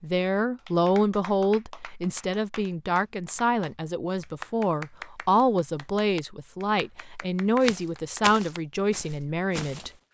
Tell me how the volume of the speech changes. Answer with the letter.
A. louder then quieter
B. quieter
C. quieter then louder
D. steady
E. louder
D.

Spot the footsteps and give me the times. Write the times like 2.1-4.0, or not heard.
7.6-9.9.